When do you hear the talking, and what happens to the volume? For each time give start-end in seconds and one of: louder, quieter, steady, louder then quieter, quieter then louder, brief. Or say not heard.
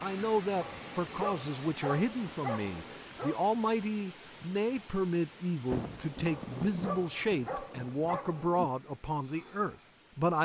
0.0-10.4 steady.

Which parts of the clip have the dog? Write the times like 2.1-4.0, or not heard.
0.6-3.4, 6.2-8.6.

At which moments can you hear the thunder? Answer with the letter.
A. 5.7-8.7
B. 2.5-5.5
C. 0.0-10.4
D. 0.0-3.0
A.